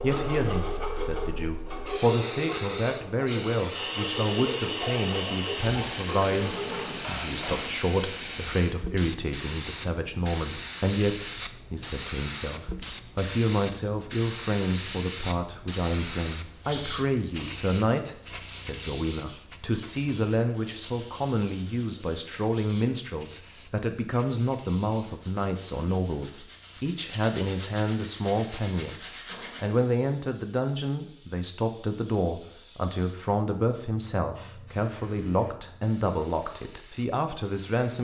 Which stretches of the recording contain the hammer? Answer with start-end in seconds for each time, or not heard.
6.3-7.8.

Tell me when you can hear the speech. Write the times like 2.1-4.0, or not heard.
0.0-37.9.